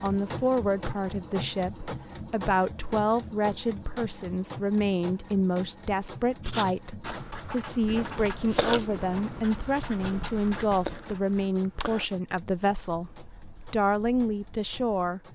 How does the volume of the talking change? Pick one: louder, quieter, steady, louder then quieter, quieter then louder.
steady.